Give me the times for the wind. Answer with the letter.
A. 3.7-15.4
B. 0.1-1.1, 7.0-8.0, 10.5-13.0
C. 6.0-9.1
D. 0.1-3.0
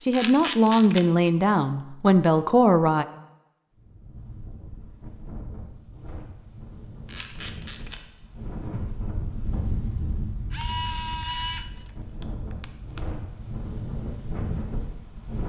A.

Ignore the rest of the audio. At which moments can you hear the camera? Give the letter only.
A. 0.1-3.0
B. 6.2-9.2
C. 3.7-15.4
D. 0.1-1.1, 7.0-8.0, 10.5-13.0
D.